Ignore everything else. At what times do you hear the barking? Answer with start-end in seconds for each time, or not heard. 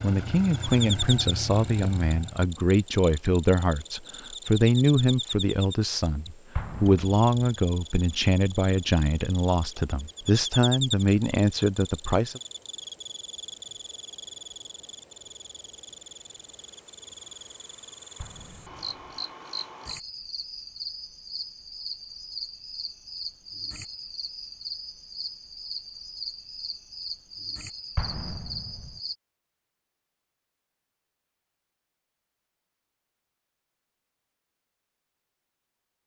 not heard.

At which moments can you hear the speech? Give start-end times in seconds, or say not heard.
0.0-12.4.